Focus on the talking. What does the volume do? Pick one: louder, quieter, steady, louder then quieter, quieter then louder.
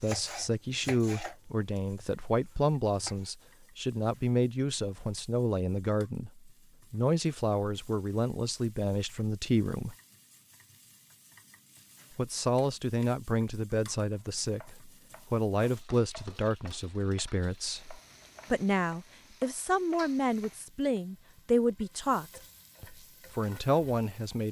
steady.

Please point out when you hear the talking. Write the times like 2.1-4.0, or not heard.
0.0-9.9, 12.2-24.4.